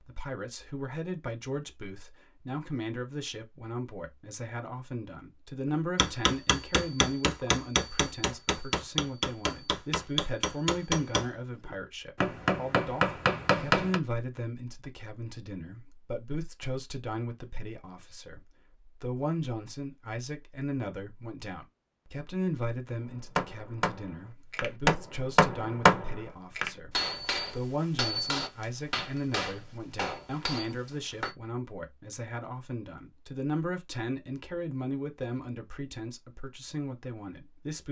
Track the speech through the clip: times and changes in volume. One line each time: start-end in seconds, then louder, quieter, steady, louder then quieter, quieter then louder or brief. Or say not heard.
0.1-37.8 steady.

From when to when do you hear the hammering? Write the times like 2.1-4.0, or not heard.
6.0-14.0, 23.1-31.4.